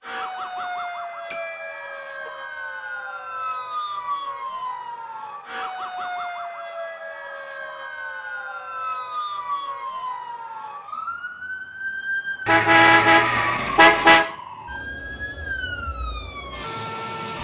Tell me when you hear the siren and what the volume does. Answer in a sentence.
You can hear the siren from 0.0 to 17.3 s, at a steady volume.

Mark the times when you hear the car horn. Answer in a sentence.
You can hear the car horn from 1.3 to 2.3 s and from 12.4 to 14.2 s.